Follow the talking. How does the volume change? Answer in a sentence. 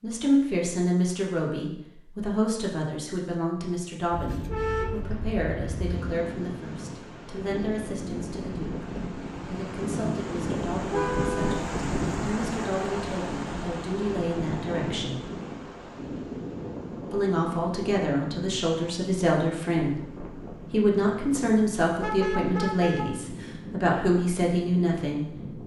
The loudness of the talking goes down, then up.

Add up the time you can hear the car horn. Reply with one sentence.
You can hear the car horn for 4 seconds altogether.